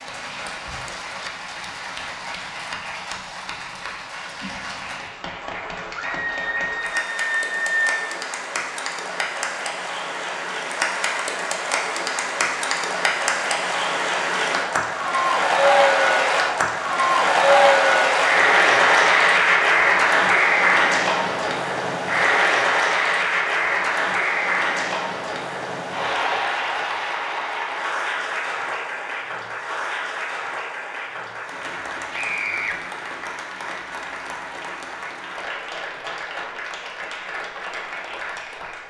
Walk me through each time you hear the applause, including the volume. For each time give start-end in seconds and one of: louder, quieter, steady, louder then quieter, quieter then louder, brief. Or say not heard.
0.0-38.8 louder then quieter.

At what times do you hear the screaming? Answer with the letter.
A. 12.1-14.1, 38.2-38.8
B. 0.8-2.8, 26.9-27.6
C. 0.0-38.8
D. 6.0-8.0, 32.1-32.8
D.